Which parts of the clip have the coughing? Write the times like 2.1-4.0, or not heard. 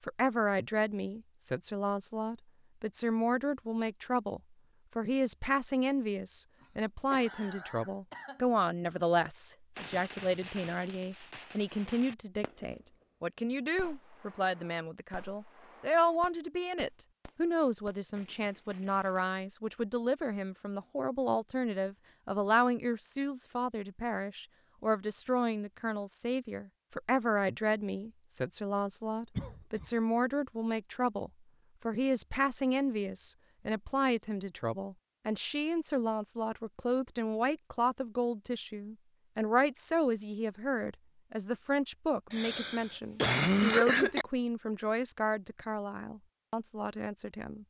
6.6-8.4, 29.4-29.9, 42.3-44.2.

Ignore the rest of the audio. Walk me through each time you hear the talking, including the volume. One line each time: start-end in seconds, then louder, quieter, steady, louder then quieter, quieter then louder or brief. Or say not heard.
0.1-47.6 steady.